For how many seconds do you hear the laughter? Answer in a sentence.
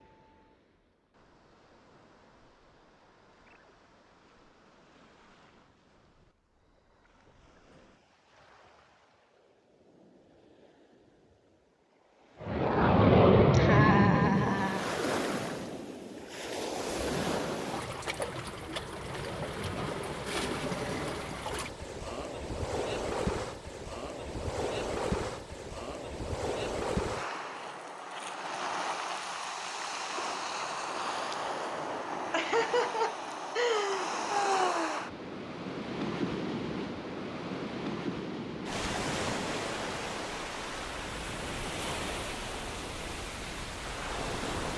The laughter can be heard for 4 seconds in total.